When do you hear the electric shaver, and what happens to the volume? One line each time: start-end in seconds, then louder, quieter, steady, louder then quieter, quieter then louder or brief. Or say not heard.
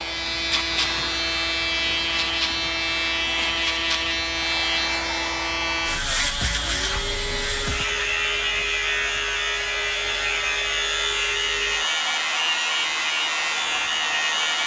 0.0-14.6 steady.